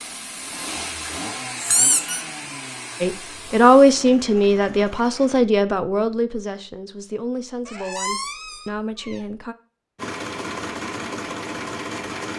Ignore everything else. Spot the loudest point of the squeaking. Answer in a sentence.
The loudest moment of the squeaking is at 2 seconds.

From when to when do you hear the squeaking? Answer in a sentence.
The squeaking can be heard from 1.6 to 2.2 s and from 7.7 to 9.2 s.